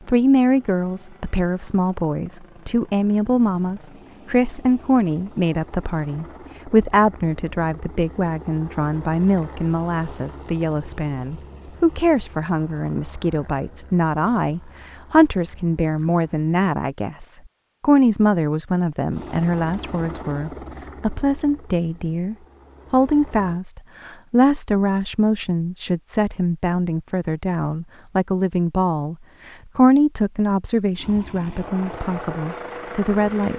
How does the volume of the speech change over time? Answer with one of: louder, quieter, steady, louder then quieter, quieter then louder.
steady.